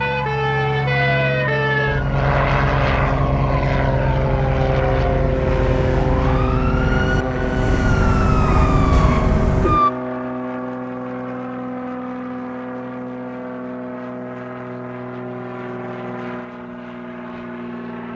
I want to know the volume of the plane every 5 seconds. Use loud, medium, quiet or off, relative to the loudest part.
loud, loud, medium, medium.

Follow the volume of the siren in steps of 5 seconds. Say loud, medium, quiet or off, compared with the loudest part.
loud, loud, off, off.